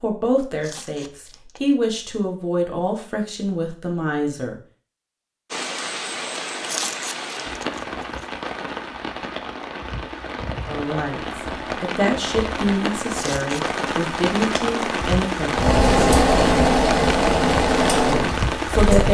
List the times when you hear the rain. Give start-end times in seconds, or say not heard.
5.5-19.1.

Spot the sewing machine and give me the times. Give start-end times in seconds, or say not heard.
15.5-18.9.